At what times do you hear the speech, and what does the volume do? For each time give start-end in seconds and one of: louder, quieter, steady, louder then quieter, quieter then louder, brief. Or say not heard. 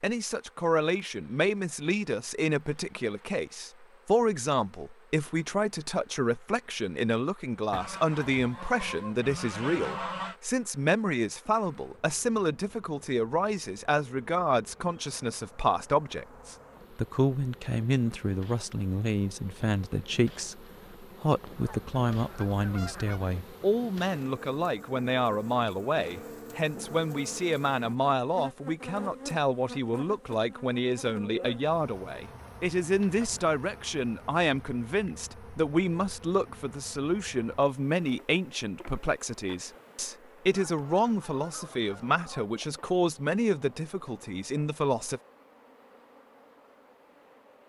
0.0-45.2 steady.